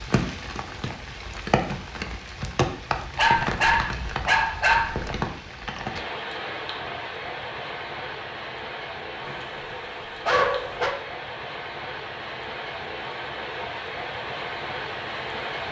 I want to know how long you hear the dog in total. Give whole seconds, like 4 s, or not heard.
4 s.